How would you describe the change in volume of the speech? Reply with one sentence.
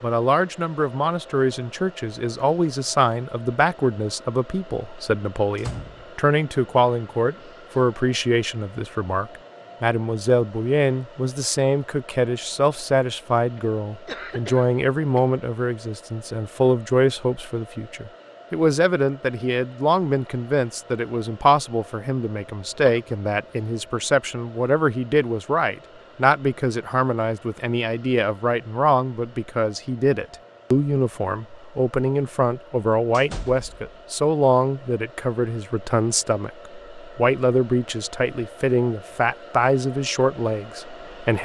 The volume of the speech stays about the same.